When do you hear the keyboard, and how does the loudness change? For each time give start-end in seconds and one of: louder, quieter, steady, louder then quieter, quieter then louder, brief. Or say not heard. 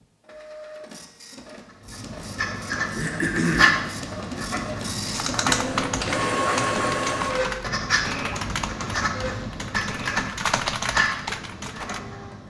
5.1-12.0 quieter then louder.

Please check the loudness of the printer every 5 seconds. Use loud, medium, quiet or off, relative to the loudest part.
medium, loud, quiet.